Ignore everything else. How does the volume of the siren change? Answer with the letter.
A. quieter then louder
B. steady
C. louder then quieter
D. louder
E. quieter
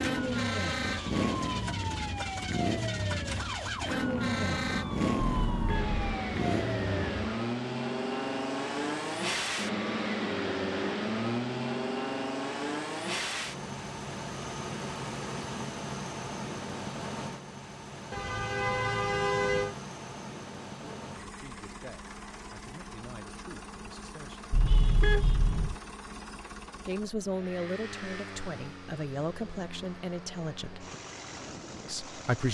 B.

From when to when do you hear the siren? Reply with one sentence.
You can hear the siren from 0.0 to 7.4 s.